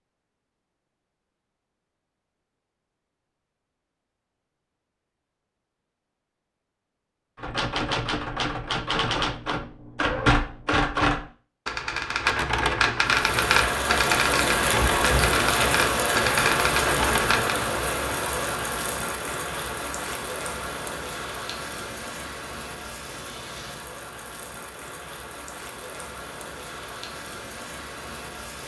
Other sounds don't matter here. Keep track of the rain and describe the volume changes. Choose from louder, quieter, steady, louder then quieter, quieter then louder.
quieter.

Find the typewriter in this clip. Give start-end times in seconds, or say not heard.
7.4-17.6.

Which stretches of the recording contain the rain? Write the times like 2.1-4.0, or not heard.
13.1-28.6.